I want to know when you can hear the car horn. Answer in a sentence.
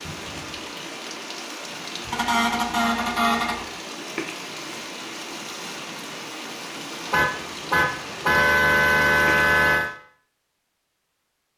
You can hear the car horn from 2.1 to 3.6 s and from 7.1 to 9.9 s.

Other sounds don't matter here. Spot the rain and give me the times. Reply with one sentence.
You can hear the rain from 0.0 to 9.9 s.